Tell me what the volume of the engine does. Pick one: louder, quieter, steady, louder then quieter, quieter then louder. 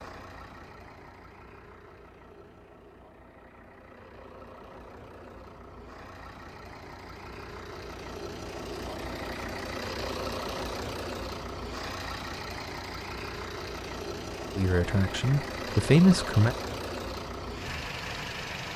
louder.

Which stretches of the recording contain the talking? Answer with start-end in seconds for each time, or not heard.
14.6-16.6.